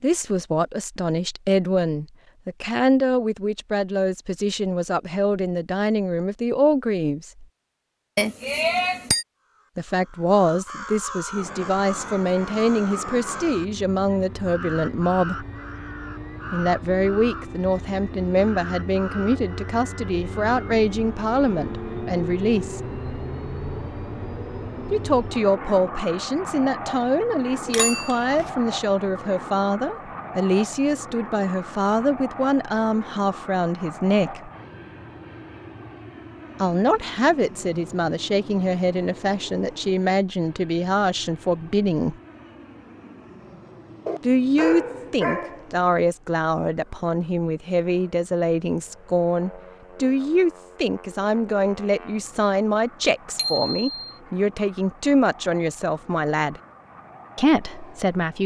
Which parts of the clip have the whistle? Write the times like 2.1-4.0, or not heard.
not heard.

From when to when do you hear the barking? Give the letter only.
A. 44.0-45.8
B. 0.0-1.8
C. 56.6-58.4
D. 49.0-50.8
A.